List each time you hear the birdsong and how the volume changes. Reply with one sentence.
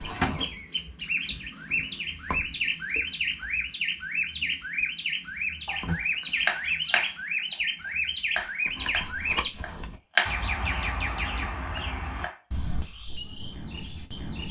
You can hear the birdsong from 0.0 to 14.4 s, getting quieter.